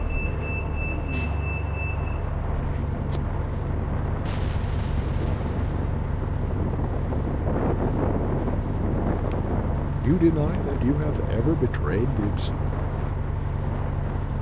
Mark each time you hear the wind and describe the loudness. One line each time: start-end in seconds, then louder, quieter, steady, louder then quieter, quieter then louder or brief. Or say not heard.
0.0-14.3 louder then quieter.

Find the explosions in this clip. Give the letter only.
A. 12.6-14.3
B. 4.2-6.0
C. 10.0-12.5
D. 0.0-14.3
B.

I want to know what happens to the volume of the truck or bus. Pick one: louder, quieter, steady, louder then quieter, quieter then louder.
steady.